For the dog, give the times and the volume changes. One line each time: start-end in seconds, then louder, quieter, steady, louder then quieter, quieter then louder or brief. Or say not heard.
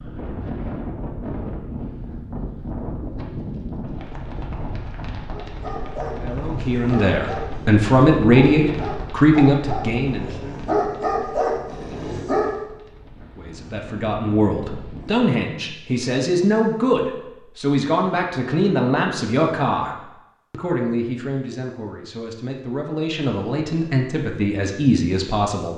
5.3-12.5 louder.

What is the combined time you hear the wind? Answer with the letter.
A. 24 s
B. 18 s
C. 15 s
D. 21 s
C.